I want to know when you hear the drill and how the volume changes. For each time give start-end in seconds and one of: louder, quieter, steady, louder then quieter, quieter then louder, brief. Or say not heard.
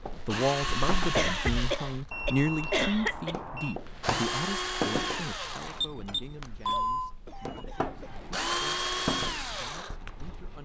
0.0-10.6 quieter then louder.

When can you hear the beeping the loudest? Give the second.
7 s.